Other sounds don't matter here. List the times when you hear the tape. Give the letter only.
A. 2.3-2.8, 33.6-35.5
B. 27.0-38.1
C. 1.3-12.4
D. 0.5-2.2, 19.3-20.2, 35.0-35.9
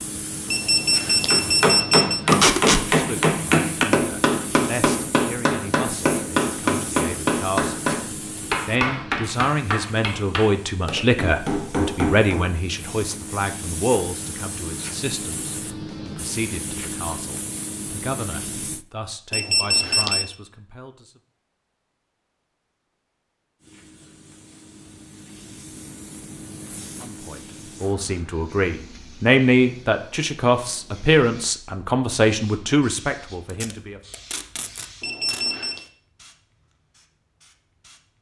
A.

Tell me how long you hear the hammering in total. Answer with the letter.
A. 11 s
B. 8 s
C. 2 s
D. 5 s
A.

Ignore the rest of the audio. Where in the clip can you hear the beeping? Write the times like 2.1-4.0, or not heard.
0.5-2.2, 19.3-20.2, 35.0-35.9.